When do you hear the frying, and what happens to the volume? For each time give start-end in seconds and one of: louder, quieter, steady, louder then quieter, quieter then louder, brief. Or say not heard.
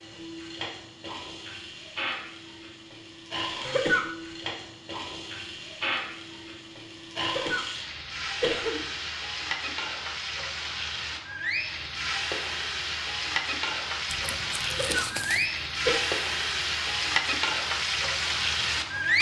0.0-19.1 louder.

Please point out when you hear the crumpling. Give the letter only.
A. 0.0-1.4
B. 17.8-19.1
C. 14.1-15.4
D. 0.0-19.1
C.